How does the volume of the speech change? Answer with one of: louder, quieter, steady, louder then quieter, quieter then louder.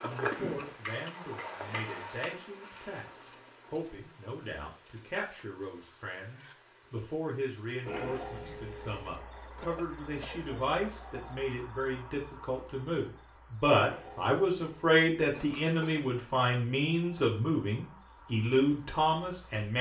louder.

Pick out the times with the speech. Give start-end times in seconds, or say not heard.
0.0-3.0, 3.7-19.7.